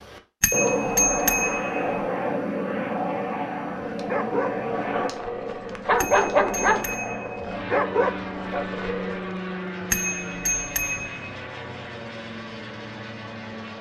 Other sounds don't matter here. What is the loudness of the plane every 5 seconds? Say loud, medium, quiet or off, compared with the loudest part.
loud, medium, medium.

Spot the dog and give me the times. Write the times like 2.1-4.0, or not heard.
3.8-9.2.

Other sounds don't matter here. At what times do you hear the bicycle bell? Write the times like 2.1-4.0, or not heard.
0.4-2.0, 6.0-7.4, 9.9-11.3.